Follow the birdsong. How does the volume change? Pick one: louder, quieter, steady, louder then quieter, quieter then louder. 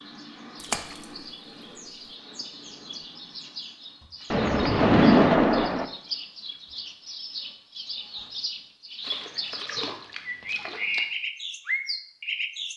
louder.